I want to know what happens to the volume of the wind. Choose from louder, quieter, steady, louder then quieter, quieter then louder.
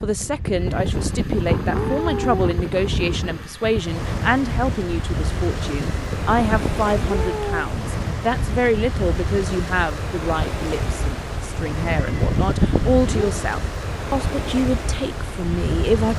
steady.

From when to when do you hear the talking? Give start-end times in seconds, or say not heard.
0.0-16.1.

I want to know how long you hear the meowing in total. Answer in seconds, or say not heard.
5 s.